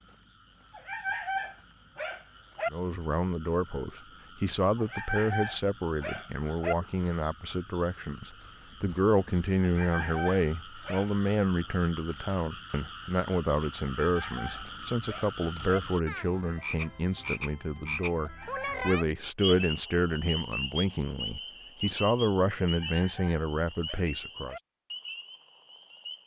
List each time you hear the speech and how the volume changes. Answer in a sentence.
The speech can be heard from 2.7 to 24.6 s, at a steady volume.